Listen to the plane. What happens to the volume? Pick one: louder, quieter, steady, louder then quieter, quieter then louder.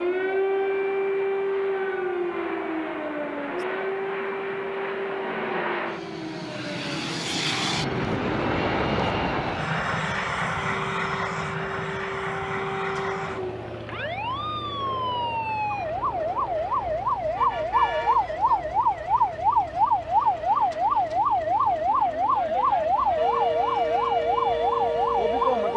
louder then quieter.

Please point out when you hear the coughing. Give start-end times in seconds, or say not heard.
not heard.